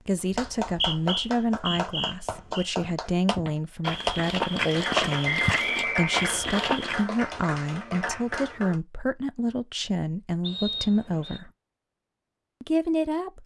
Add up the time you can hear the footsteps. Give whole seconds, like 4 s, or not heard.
5 s.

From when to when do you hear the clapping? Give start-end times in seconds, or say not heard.
0.1-8.8.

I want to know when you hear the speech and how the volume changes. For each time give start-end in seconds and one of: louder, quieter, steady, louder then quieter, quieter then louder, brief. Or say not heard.
0.1-11.5 steady
12.6-13.4 brief.